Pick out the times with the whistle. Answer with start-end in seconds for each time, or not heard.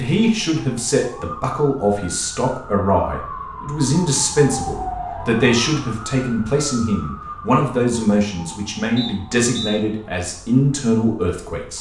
8.9-9.8.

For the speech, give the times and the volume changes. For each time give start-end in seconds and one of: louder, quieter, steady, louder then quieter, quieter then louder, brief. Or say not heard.
0.0-11.7 steady.